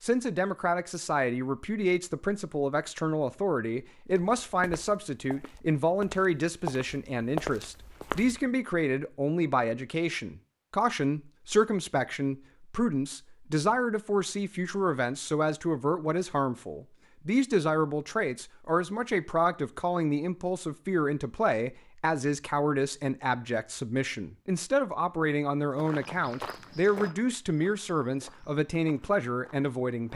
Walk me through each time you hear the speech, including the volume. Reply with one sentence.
The speech can be heard from 0.0 to 30.1 s, at a steady volume.